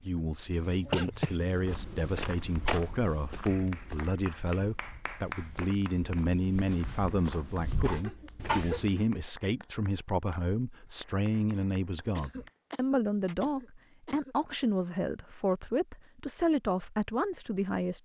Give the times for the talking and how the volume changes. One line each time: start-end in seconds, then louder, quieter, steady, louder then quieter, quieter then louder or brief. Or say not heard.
0.0-18.0 steady.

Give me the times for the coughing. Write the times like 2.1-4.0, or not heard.
0.6-1.6, 7.8-8.8, 12.2-14.8.